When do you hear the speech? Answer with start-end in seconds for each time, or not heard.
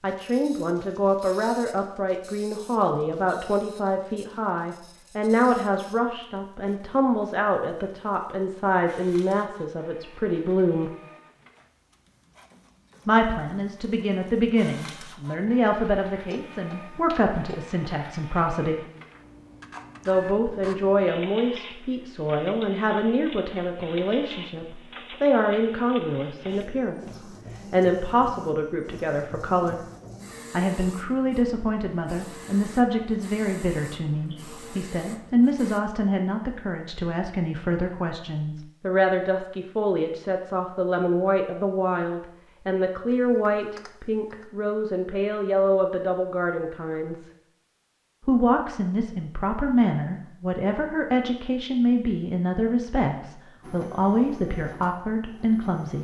0.0-10.9, 13.1-18.9, 20.1-29.8, 30.5-47.3, 48.2-56.0.